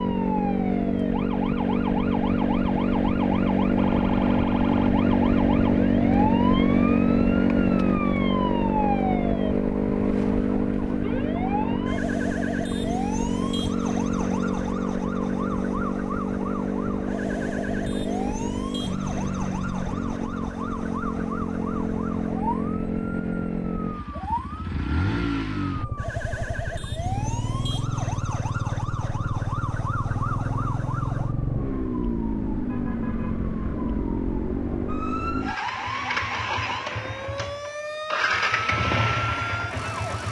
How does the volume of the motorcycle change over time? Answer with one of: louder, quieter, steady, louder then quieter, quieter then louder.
quieter.